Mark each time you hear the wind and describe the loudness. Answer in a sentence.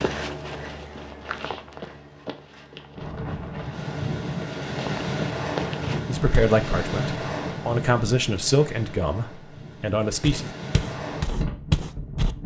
The wind can be heard from 3.0 to 12.4 s, getting quieter then louder.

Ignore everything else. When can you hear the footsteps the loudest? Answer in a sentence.
The loudest moment of the footsteps is at 12 seconds.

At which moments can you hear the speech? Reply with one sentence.
The speech can be heard from 6.0 to 10.5 s.